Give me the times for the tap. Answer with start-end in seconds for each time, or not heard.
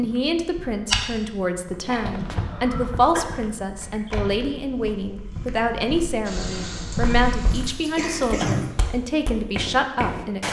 6.2-8.8.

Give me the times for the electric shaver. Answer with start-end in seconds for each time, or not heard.
not heard.